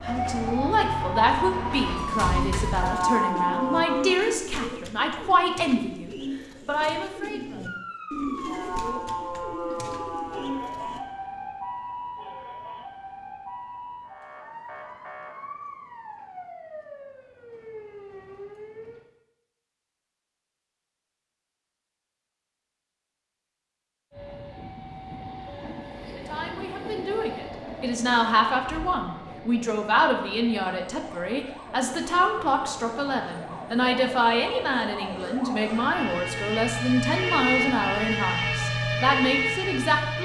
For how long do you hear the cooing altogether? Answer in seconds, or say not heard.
9 s.